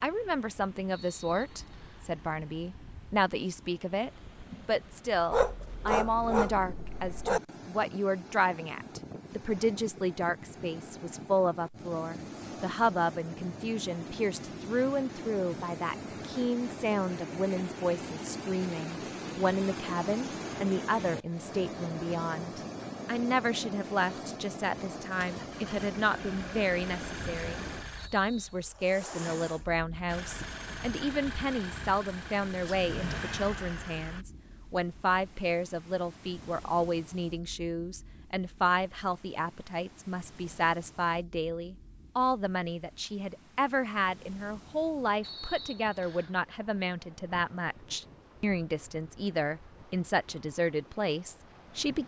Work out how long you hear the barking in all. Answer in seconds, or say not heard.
2 s.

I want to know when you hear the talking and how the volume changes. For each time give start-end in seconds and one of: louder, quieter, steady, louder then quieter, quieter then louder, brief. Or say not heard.
0.0-52.0 steady.